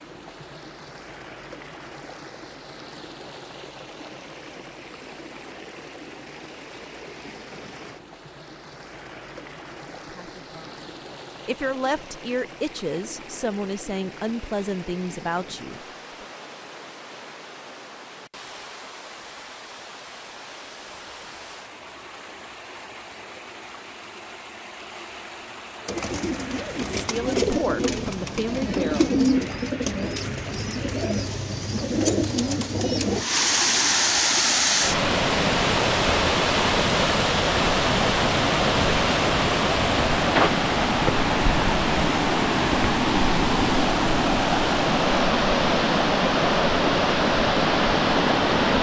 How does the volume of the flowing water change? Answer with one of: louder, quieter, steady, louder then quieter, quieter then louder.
louder.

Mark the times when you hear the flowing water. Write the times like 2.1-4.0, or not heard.
0.0-48.7.